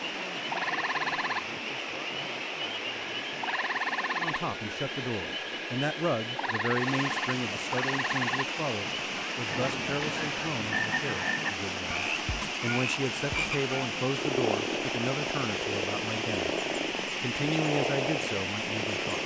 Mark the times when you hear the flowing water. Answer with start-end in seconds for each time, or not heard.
0.0-19.2.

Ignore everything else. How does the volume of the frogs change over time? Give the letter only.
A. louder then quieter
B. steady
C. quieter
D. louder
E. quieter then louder
B.